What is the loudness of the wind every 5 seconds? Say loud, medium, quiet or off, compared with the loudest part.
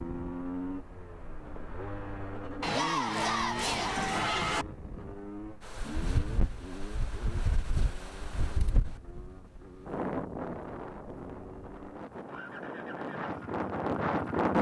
off, medium, loud.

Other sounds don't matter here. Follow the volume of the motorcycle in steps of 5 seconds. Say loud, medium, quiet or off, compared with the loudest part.
loud, medium, medium.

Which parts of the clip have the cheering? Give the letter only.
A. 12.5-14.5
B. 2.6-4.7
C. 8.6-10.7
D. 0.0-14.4
B.